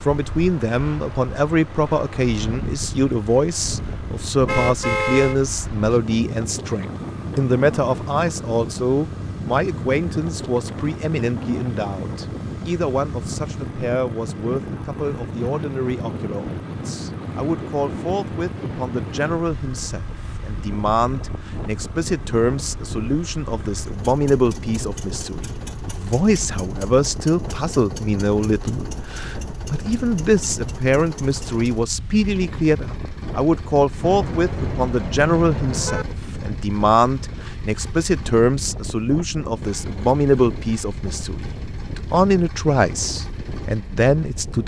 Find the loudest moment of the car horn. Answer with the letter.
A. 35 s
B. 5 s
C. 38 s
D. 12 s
B.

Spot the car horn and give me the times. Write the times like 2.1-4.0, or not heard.
4.5-5.4, 34.0-36.0.